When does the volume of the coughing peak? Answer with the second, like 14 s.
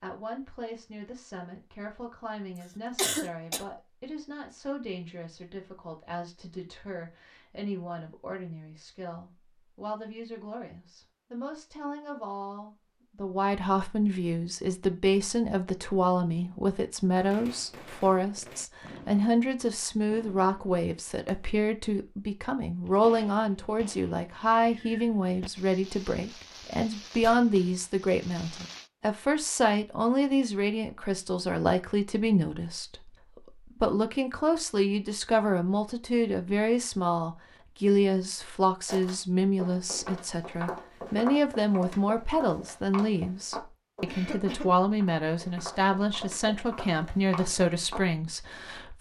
3 s.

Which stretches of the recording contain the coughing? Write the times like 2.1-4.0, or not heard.
3.0-3.6, 44.0-44.7.